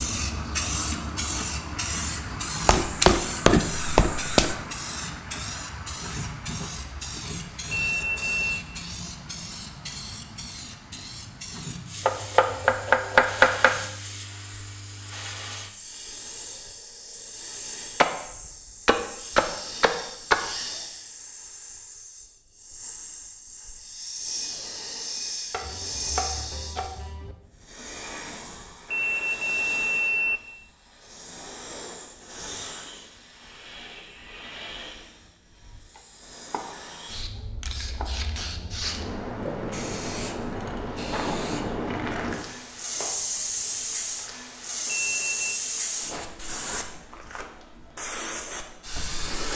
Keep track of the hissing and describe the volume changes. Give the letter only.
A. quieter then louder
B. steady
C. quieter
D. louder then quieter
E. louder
A.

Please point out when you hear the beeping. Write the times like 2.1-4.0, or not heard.
7.7-8.7, 28.9-30.4, 44.9-45.6.